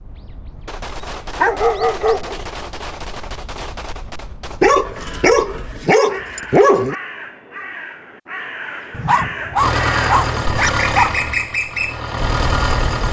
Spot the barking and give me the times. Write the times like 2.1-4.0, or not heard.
1.4-2.4, 4.6-7.0, 8.9-11.2.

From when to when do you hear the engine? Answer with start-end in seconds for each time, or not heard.
9.6-13.0.